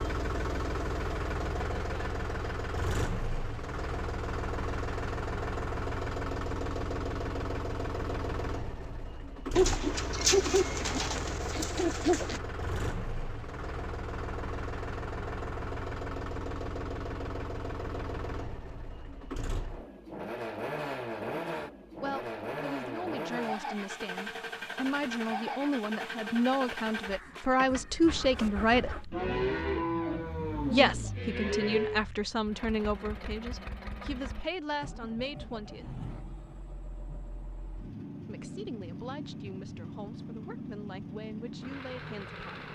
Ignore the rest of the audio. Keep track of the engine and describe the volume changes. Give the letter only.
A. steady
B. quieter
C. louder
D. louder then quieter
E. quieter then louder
B.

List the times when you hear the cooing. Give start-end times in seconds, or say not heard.
9.6-12.4.